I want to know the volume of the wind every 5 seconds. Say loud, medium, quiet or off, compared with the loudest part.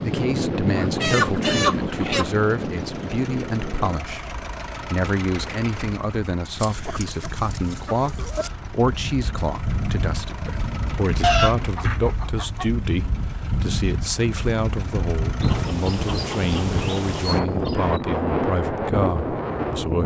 loud, medium, medium, loud.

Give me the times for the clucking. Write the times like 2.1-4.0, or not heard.
0.7-2.4, 6.6-8.5, 11.2-12.7, 15.4-17.9.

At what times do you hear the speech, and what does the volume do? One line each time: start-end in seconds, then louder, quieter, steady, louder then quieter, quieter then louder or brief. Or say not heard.
0.0-20.0 steady.